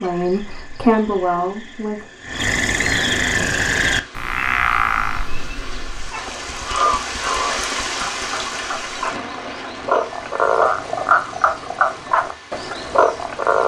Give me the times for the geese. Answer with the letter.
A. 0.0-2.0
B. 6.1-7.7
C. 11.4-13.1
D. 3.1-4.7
B.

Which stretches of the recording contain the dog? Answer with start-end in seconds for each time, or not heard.
not heard.